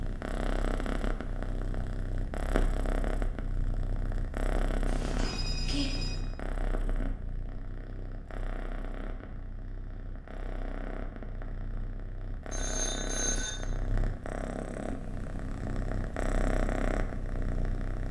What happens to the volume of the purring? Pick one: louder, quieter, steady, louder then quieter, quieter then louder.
quieter then louder.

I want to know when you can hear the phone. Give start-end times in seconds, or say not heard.
4.8-6.2, 12.5-13.5.